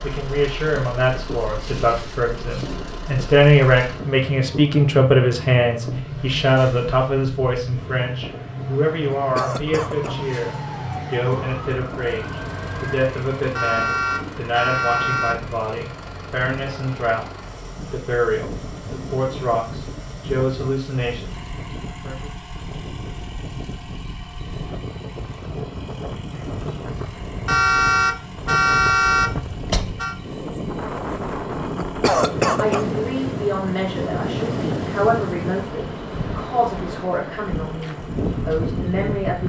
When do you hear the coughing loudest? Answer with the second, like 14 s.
32 s.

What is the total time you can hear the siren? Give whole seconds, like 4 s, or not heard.
3 s.